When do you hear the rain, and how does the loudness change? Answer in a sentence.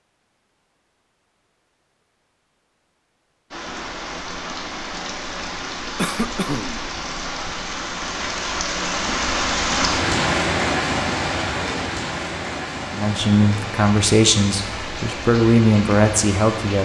The rain can be heard from 3.5 to 16.8 s, getting louder then quieter.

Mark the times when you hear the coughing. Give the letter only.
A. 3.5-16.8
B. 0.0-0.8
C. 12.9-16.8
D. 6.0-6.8
D.